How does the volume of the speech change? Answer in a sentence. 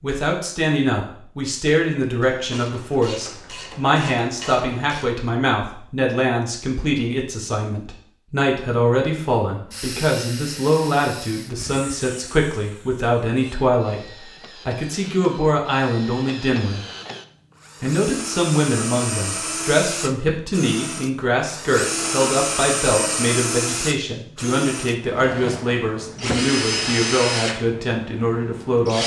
The volume of the speech stays about the same.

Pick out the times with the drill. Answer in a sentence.
The drill can be heard from 9.7 to 29.0 s.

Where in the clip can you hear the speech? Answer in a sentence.
You can hear the speech from 0.0 to 16.9 s and from 17.8 to 29.0 s.